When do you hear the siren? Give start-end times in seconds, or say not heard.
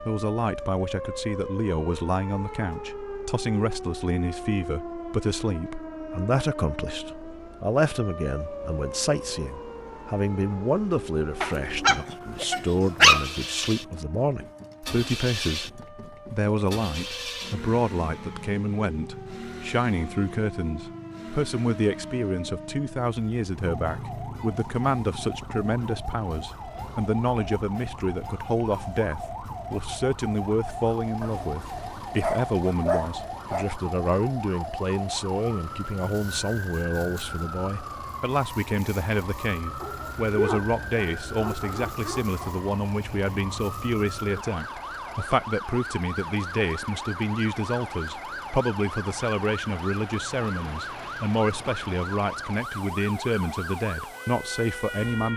0.0-55.3.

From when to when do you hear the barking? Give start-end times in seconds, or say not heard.
11.4-13.2, 31.2-33.7, 39.8-42.6.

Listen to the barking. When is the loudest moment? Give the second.
13 s.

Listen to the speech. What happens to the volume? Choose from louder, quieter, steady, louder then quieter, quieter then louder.
steady.